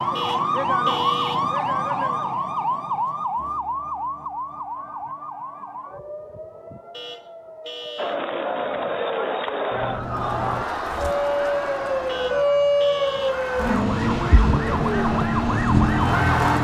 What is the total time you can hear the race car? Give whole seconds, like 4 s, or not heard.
3 s.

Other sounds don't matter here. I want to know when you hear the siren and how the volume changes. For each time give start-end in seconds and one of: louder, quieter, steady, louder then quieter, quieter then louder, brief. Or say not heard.
0.0-16.5 quieter then louder.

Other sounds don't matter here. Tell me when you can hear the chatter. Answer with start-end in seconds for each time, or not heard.
8.0-16.5.